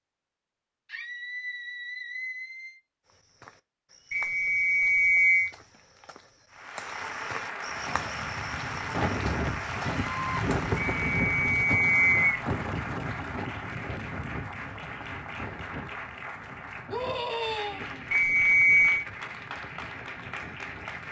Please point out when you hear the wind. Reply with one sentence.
The wind can be heard from 7.7 to 21.0 s.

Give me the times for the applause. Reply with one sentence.
You can hear the applause from 6.5 to 21.0 s.